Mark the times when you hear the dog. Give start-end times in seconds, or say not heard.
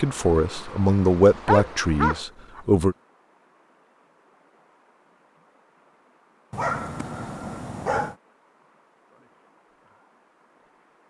1.4-2.6, 6.5-8.2.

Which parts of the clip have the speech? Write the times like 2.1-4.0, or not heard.
0.0-3.0.